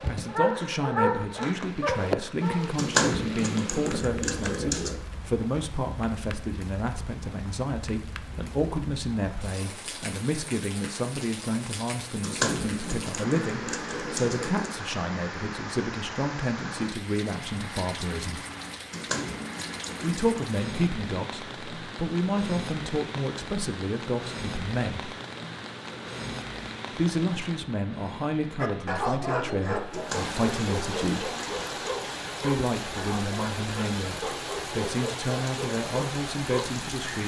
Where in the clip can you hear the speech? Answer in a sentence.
The speech can be heard from 0.1 to 18.4 s, from 20.0 to 25.1 s, from 26.9 to 31.3 s and from 32.4 to 37.2 s.